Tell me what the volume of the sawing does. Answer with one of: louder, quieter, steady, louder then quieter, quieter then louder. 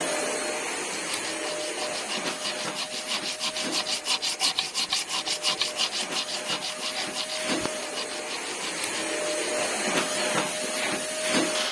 louder then quieter.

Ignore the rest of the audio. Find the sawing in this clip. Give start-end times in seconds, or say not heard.
0.9-9.6.